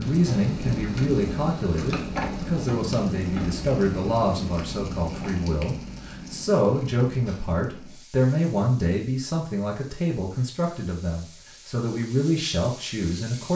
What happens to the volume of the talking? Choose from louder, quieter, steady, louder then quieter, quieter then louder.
steady.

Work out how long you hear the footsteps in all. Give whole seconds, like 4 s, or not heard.
not heard.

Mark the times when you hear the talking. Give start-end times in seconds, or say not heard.
0.0-13.5.